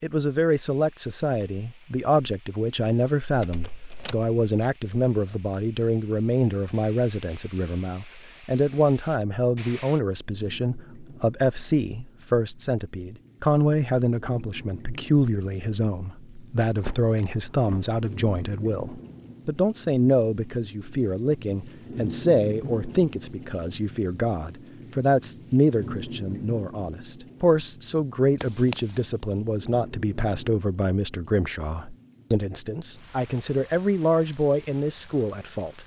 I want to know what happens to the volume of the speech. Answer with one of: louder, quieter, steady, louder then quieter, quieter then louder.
steady.